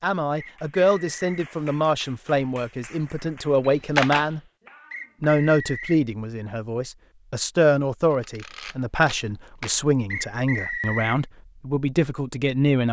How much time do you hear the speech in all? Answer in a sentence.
The speech can be heard for 12 seconds in total.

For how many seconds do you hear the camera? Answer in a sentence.
You can hear the camera for 2 seconds altogether.